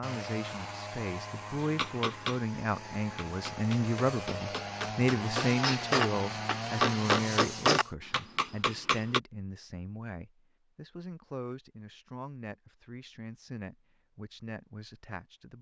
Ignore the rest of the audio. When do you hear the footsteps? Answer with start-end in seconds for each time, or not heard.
not heard.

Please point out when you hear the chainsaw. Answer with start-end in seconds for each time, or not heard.
0.0-8.0.